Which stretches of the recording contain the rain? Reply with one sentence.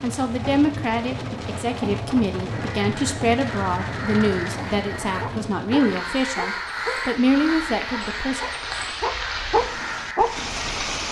The rain can be heard from 0.0 to 11.0 s.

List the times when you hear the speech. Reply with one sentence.
You can hear the speech from 0.0 to 8.4 s.